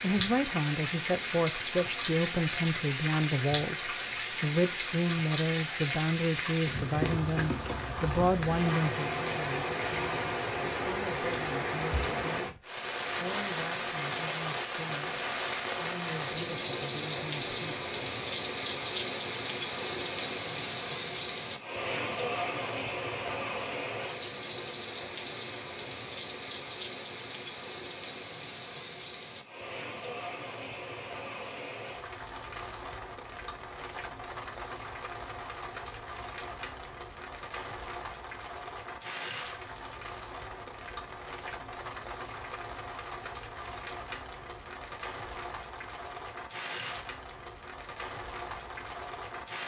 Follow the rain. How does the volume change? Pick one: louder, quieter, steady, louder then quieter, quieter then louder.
quieter.